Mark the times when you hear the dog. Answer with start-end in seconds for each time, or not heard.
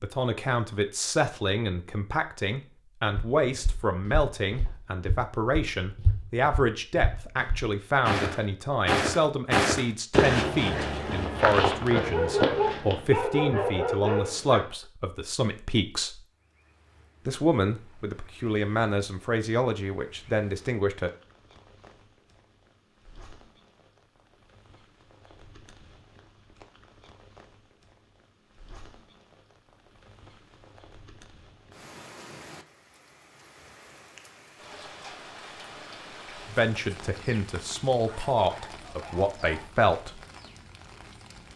11.9-14.7, 38.0-39.7.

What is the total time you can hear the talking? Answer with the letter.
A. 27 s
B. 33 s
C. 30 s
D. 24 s
D.